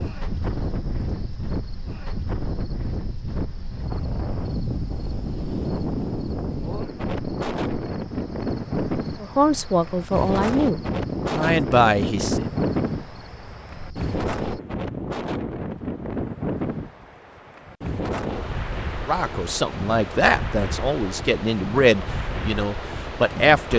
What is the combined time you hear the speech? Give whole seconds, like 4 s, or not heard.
8 s.